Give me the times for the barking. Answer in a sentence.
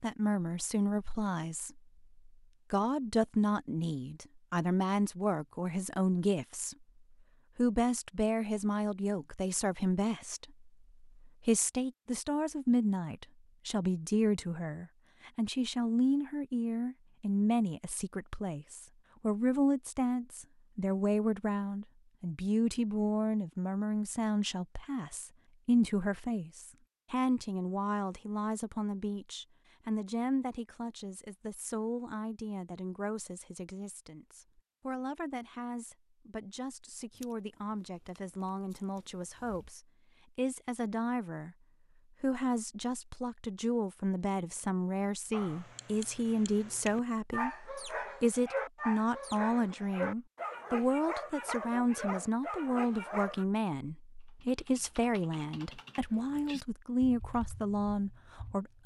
The barking can be heard from 45.3 to 53.5 s.